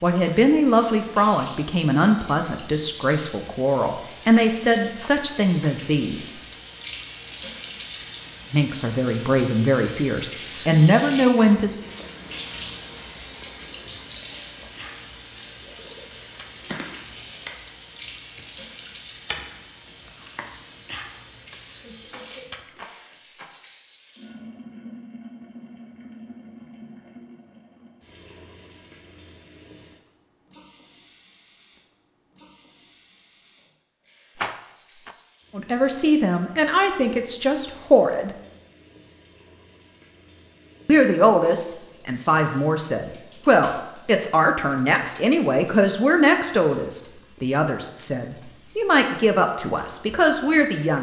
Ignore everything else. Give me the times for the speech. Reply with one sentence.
The speech can be heard from 0.0 to 6.3 s, from 8.5 to 11.8 s, from 35.5 to 38.3 s and from 40.9 to 50.9 s.